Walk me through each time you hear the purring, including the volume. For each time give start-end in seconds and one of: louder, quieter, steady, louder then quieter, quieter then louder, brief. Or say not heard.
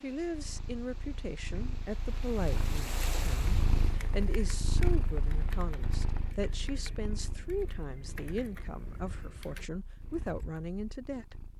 0.0-11.5 louder then quieter.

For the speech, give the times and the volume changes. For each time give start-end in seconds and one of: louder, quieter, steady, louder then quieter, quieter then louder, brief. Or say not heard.
0.0-11.4 steady.